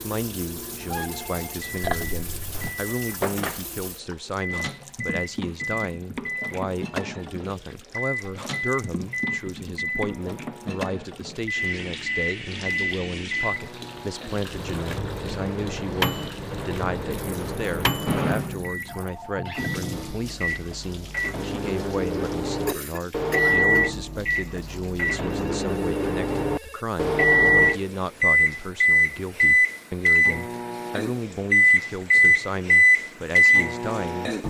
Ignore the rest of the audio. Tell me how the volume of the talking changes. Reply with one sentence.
The loudness of the talking stays about the same.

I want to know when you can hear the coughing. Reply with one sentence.
The coughing can be heard from 1.8 to 2.8 s and from 22.6 to 23.7 s.